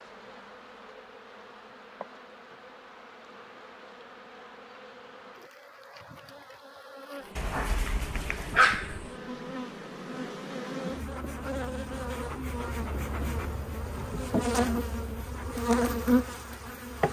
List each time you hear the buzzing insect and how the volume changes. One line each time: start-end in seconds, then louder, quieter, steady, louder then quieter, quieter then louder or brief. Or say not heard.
0.0-17.0 louder.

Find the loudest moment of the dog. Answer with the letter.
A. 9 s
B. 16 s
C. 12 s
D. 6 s
A.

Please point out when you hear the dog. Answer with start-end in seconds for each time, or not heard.
7.3-9.0.